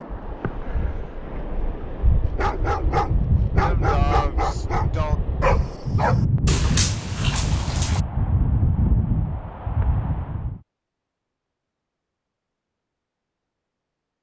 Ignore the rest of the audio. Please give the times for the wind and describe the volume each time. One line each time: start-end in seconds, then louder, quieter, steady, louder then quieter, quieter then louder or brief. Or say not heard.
0.0-10.6 louder.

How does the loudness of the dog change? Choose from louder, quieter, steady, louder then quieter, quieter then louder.
steady.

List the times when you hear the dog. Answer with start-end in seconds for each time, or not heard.
2.2-8.0.